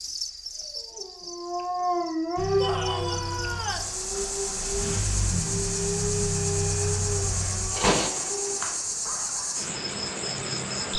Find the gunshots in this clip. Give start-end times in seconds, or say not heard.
7.8-8.8.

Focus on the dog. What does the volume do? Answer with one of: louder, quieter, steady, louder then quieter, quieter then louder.
quieter.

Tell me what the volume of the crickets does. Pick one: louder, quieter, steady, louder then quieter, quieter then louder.
louder.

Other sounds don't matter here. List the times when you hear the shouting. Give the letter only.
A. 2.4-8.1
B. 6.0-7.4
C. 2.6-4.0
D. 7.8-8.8
C.